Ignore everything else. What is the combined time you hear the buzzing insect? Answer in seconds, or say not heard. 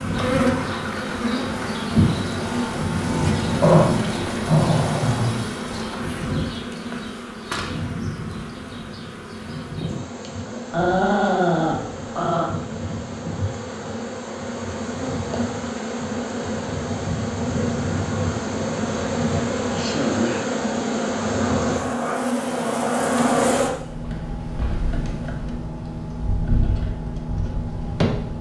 28 s.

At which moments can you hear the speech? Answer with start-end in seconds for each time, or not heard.
not heard.